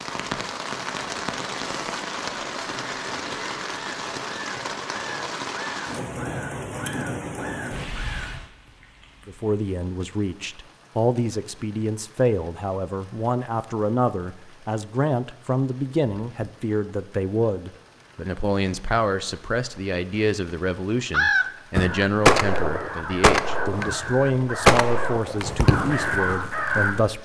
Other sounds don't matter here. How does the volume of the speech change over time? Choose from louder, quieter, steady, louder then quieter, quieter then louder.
steady.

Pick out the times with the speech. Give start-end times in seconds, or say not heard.
9.2-27.2.